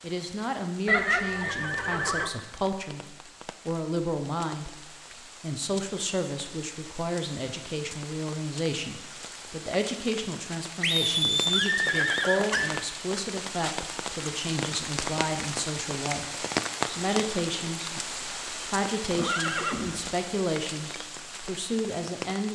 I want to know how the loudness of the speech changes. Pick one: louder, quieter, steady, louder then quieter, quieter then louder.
steady.